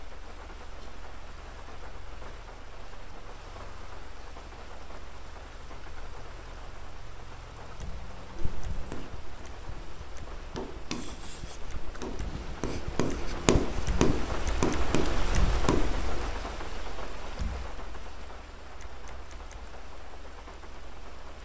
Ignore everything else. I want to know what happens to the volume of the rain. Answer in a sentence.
The loudness of the rain goes up, then down.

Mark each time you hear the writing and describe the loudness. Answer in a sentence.
The writing can be heard from 8.3 to 16.3 s, getting louder.